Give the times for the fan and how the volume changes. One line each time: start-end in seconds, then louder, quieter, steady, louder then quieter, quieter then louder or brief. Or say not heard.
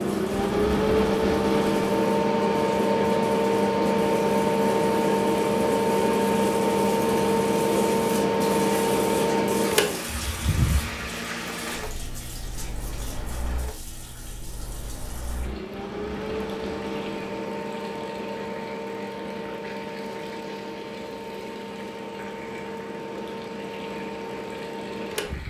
0.0-25.4 quieter.